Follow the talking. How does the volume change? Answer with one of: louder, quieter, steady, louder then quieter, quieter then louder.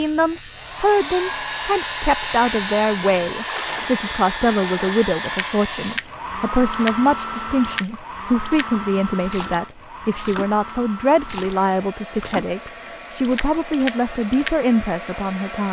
steady.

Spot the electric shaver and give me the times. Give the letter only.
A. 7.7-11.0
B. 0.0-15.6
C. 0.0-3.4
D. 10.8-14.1
C.